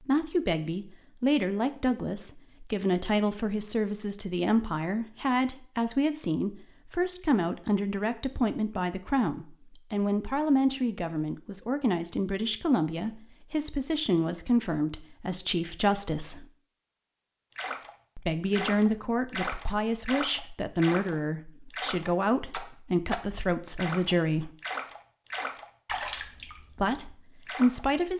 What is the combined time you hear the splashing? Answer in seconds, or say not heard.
10 s.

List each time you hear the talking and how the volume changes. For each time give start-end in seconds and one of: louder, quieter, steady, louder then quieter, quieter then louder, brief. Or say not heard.
0.0-16.4 steady
18.1-24.5 steady
26.8-28.1 brief.